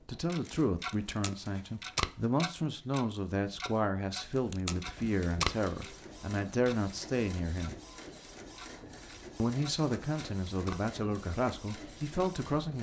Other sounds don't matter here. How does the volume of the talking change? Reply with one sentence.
The loudness of the talking stays about the same.